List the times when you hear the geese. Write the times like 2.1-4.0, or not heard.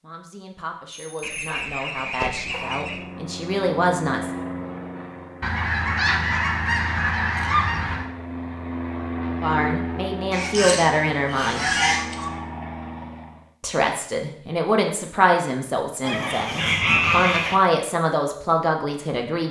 1.2-3.0, 5.4-8.1, 10.3-12.3, 16.0-17.6.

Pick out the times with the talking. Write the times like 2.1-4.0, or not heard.
0.0-4.3, 9.3-11.7, 13.6-19.4.